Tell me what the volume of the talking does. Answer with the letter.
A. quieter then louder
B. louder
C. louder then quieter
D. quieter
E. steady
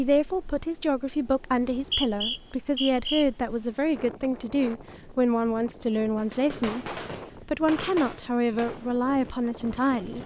E.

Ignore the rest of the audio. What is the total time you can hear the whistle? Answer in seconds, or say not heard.
2 s.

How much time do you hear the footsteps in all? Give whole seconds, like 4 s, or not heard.
not heard.